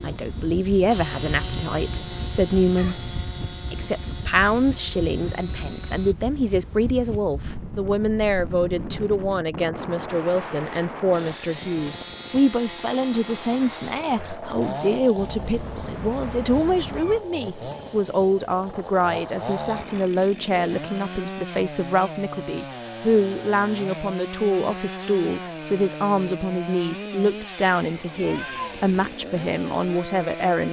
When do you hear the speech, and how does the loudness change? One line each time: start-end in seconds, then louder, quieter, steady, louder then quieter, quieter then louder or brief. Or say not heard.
0.0-30.6 steady.